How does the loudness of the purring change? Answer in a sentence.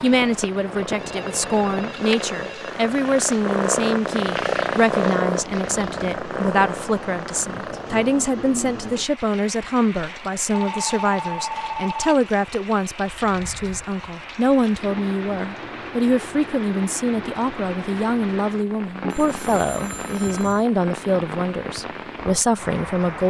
The volume of the purring goes up, then down.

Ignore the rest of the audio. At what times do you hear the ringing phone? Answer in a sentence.
The ringing phone can be heard from 0.8 to 2.8 s, from 10.5 to 12.2 s and from 19.0 to 20.6 s.